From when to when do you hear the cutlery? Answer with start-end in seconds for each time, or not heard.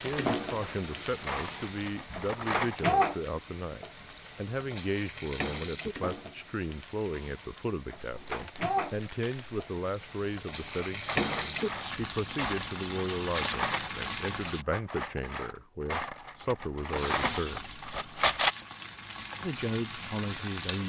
0.1-3.0, 10.7-18.5.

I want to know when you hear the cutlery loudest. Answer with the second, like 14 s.
18 s.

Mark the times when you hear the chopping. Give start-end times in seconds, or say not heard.
not heard.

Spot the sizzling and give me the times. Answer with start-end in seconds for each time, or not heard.
0.0-14.7, 16.9-20.8.